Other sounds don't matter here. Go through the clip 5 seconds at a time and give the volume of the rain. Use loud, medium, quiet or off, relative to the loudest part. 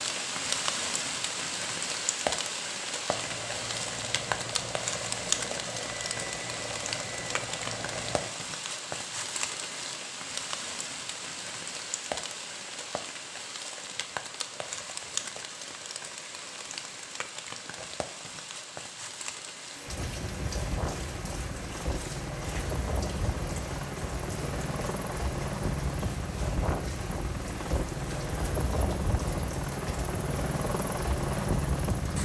loud, loud, medium, medium, medium, quiet, quiet.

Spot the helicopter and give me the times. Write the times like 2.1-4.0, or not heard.
3.0-8.3, 19.9-32.2.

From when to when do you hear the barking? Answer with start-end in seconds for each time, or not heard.
not heard.